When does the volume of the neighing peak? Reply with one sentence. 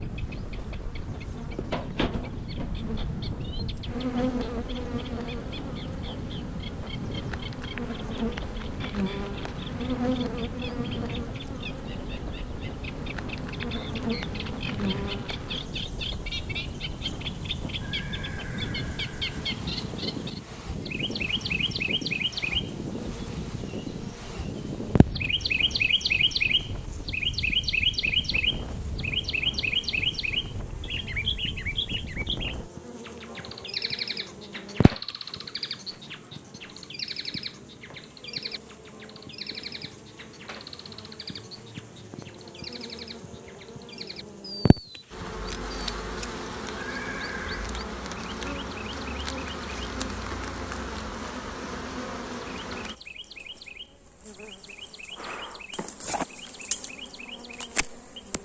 The loudest moment of the neighing is at 47 seconds.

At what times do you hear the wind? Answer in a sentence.
The wind can be heard from 0.0 to 32.7 s.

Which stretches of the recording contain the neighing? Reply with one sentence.
The neighing can be heard from 17.8 to 19.4 s and from 46.8 to 47.8 s.